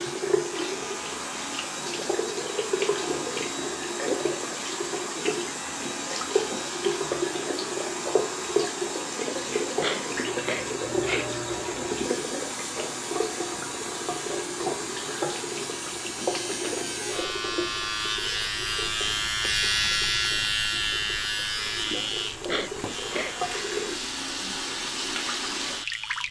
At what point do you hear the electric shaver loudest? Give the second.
20 s.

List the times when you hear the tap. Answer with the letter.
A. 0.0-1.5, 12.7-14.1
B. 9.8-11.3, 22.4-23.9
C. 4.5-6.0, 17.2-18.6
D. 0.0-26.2
D.